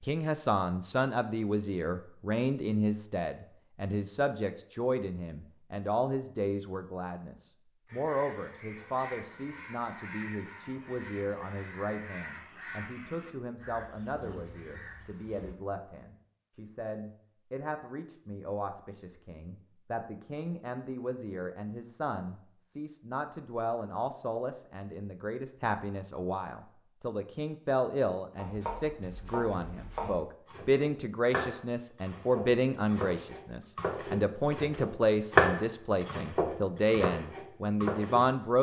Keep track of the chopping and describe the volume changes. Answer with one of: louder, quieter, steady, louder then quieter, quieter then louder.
louder then quieter.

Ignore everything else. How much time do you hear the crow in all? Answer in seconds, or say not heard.
8 s.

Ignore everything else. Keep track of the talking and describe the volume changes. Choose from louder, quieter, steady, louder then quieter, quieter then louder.
quieter then louder.